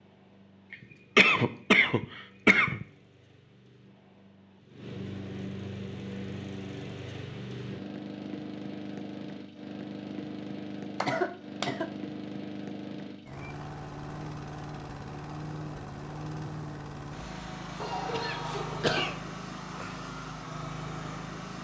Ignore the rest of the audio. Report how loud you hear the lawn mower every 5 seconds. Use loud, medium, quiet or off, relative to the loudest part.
quiet, loud, loud, loud, loud.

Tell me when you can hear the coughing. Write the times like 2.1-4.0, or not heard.
0.7-2.9, 11.0-11.9, 17.8-19.1.